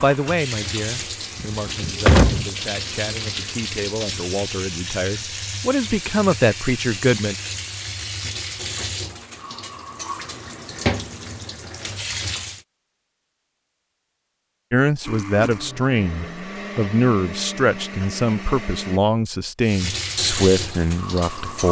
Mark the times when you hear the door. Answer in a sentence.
You can hear the door from 1.4 to 2.5 s.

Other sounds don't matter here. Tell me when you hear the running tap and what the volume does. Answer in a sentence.
You can hear the running tap from 0.0 to 12.7 s, at a steady volume; and briefly from 19.6 to 21.6 s.